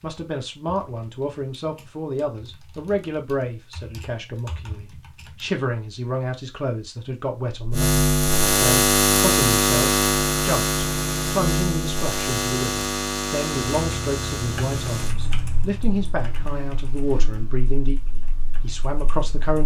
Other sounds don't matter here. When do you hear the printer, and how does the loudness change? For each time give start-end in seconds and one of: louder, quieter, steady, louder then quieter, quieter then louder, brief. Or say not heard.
not heard.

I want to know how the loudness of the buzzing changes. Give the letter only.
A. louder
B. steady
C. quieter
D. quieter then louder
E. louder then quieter
C.